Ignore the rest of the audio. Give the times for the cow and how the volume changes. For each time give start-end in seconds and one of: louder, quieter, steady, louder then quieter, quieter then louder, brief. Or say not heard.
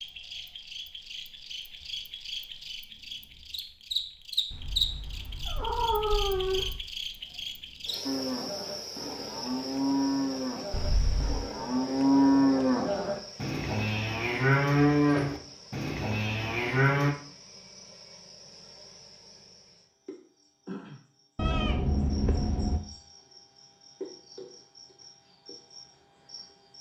8.0-17.1 louder then quieter.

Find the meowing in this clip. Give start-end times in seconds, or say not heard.
4.5-6.8, 10.7-11.4, 21.4-22.8.